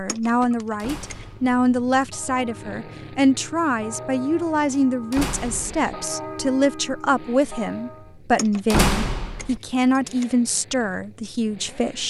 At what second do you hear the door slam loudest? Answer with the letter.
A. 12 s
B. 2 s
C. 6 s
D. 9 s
D.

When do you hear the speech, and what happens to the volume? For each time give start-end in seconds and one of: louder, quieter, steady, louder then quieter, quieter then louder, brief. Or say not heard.
0.0-12.0 steady.